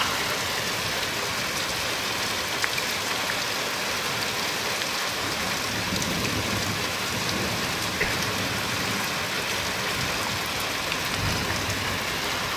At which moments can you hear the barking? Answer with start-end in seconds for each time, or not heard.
not heard.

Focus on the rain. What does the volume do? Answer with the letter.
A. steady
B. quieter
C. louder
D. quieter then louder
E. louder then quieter
A.